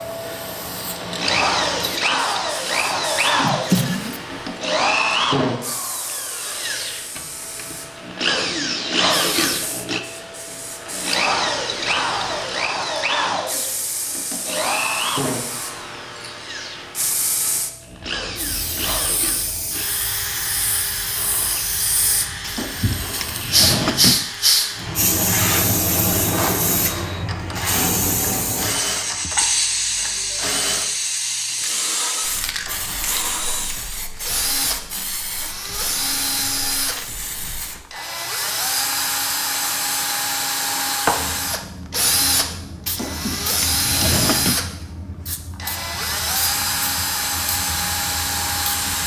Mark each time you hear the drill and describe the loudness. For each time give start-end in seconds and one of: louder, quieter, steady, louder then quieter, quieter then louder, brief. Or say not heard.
0.0-49.0 quieter then louder.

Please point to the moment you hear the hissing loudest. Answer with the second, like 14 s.
24 s.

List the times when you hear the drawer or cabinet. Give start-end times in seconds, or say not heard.
3.4-4.2, 22.4-24.2, 42.9-44.5.